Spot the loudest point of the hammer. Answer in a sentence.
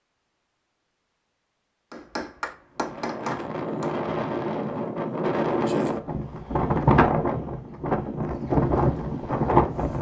The volume of the hammer peaks at 3 seconds.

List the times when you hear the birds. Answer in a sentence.
You can't hear the birds here.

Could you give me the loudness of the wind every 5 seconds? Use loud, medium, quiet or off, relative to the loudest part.
medium, loud.